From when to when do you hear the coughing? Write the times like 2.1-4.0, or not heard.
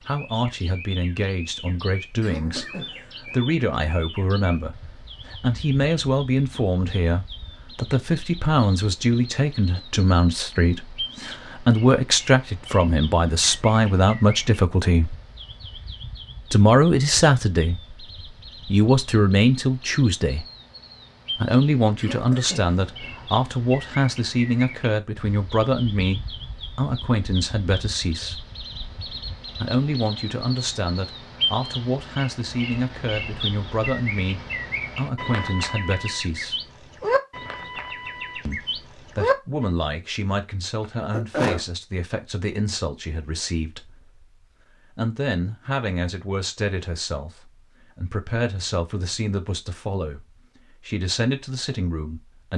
2.2-3.5, 21.9-23.2, 40.8-41.6.